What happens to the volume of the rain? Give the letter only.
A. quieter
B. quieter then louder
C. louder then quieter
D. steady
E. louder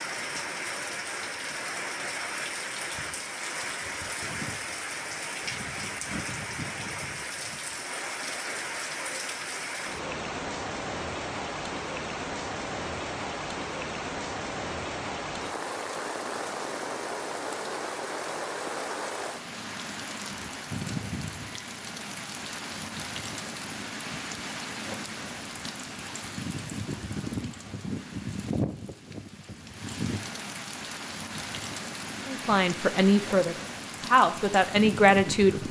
D.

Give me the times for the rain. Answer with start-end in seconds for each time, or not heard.
0.0-35.6.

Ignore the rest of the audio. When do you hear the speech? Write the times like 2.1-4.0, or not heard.
32.2-35.6.